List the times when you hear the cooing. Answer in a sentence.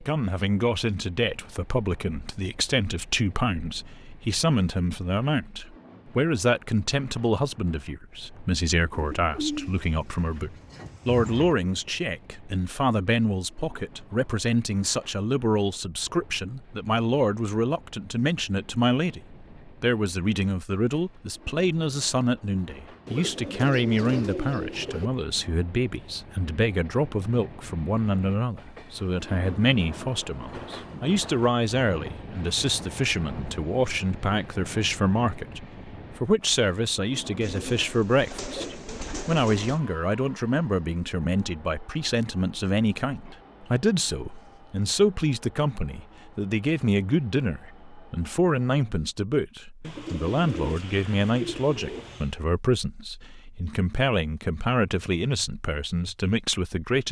You can hear the cooing from 8.9 to 11.6 s, from 23.1 to 25.1 s, from 37.4 to 39.8 s and from 49.8 to 52.4 s.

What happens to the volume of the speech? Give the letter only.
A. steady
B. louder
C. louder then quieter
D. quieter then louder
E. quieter
A.